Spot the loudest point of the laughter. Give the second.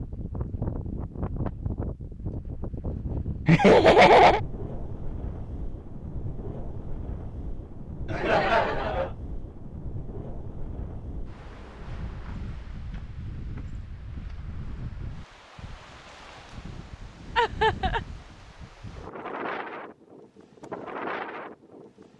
4 s.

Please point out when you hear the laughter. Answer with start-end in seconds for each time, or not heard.
3.5-4.4, 8.1-9.1, 17.4-18.0.